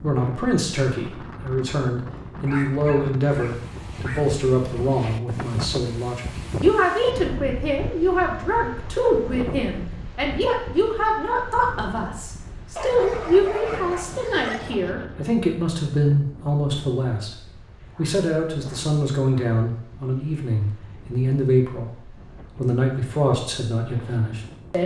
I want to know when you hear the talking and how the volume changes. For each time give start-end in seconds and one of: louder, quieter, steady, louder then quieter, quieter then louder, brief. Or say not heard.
0.0-21.9 steady
22.6-24.8 brief.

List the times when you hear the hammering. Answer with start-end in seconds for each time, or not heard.
not heard.